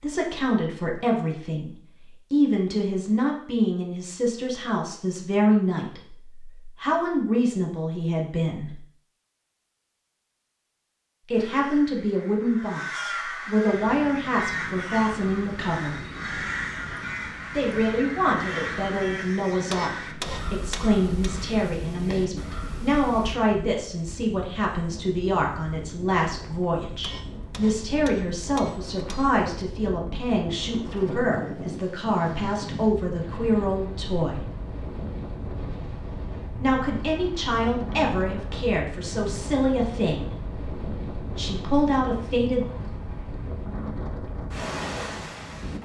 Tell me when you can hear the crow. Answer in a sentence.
You can hear the crow from 11.3 to 23.4 s.